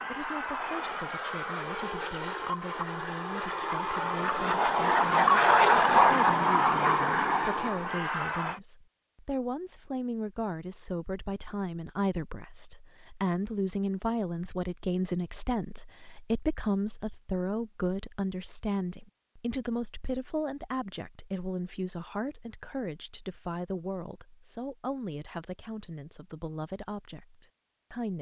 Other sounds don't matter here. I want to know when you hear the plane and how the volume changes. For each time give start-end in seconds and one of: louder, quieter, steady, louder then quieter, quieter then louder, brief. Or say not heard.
0.0-8.6 louder then quieter.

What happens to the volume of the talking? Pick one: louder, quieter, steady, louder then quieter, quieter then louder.
louder then quieter.